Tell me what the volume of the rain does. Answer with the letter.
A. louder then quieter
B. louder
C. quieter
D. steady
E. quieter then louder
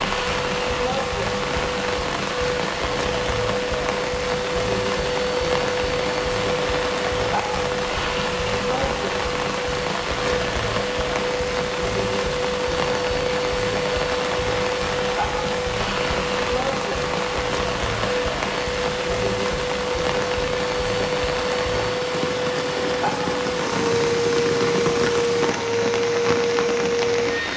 D.